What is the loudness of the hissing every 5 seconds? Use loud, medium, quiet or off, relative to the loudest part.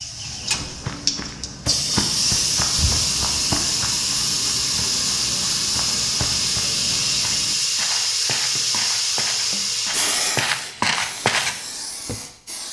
loud, loud, medium.